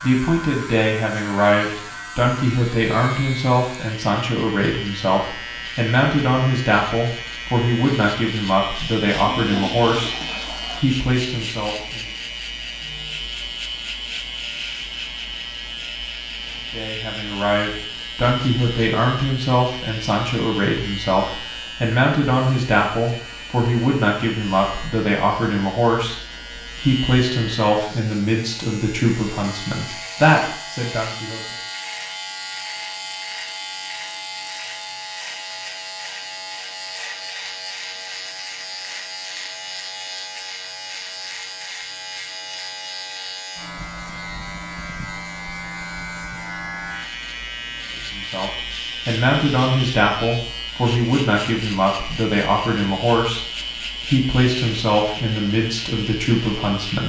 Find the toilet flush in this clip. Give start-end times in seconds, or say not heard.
9.3-10.8.